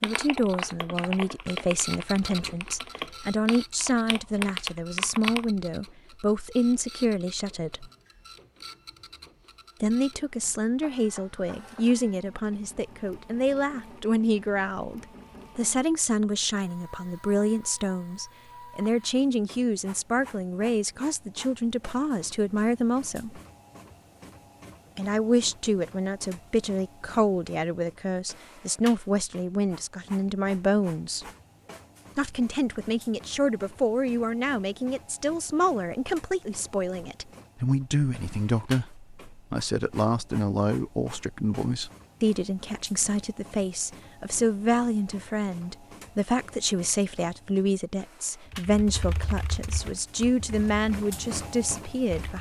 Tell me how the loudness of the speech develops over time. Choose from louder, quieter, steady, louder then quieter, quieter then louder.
steady.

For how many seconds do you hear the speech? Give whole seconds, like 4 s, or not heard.
48 s.